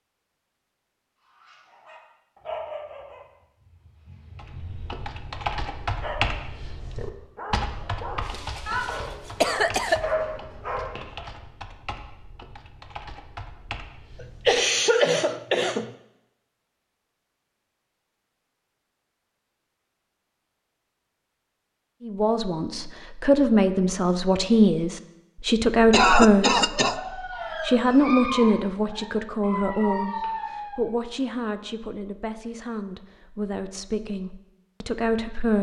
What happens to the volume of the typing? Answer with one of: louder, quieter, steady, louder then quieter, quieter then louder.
quieter.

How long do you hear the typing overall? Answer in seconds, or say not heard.
10 s.